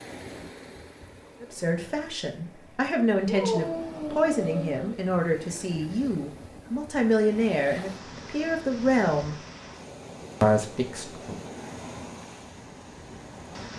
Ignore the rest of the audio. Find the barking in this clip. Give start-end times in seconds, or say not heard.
3.2-5.0.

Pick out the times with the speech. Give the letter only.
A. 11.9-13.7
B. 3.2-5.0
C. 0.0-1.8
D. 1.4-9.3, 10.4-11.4
D.